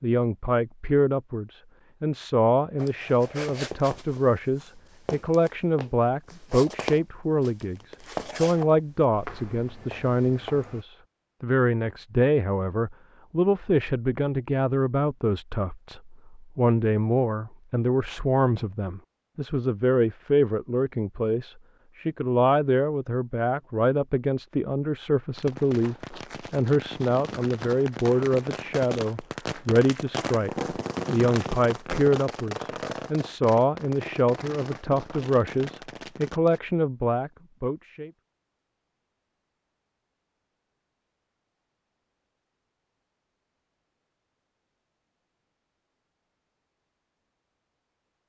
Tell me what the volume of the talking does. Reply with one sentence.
The volume of the talking stays about the same.